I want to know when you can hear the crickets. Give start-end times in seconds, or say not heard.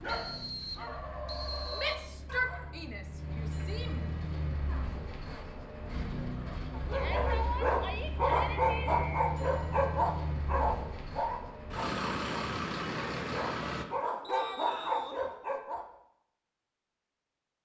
not heard.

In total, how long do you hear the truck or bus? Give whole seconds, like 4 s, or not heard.
14 s.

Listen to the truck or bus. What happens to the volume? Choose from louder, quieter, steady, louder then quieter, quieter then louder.
louder.